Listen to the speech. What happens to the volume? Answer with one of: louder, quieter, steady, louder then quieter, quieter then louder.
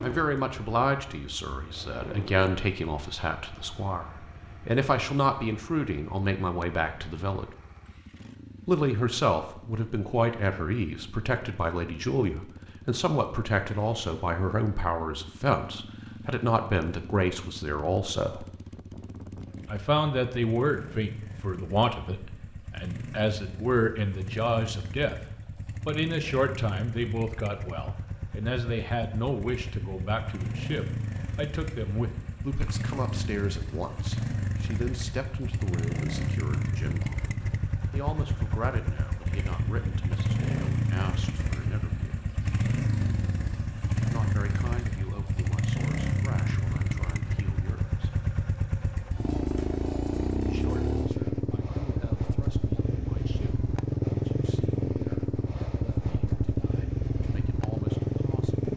quieter.